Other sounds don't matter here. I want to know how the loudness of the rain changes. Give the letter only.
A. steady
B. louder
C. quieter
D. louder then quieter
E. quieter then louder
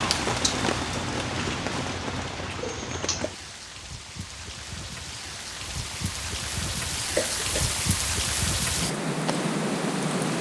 E.